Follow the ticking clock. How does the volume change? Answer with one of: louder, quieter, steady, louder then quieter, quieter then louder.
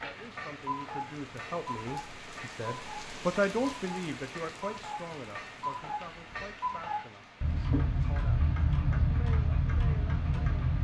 louder.